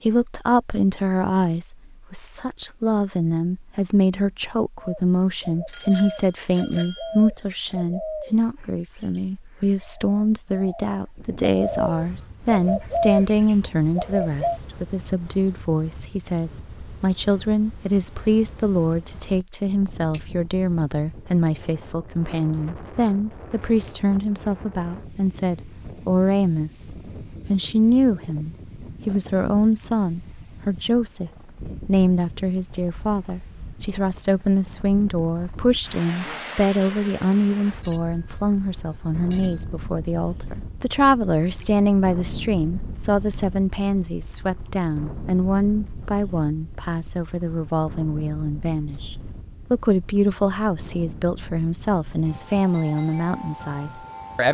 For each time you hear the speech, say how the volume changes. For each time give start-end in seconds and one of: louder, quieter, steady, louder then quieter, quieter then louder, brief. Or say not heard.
0.0-54.4 steady.